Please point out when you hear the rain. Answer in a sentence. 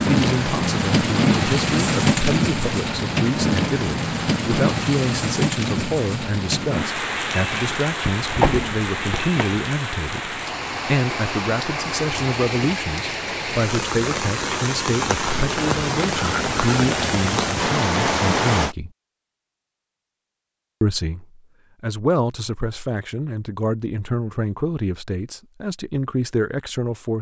The rain can be heard from 0.0 to 18.8 s.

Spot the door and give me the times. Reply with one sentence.
You can hear the door from 8.1 to 9.6 s.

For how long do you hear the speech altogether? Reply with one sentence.
You can hear the speech for 25 seconds altogether.